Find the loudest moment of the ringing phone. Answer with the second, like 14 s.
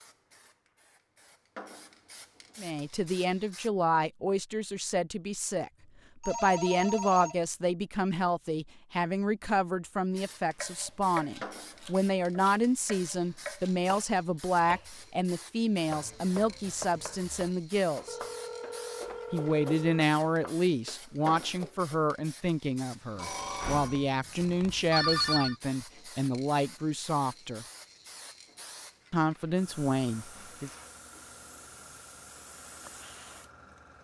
25 s.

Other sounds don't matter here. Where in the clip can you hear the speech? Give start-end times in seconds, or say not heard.
2.5-18.1, 19.3-27.6, 29.1-30.7.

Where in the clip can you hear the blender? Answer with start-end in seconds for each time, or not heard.
not heard.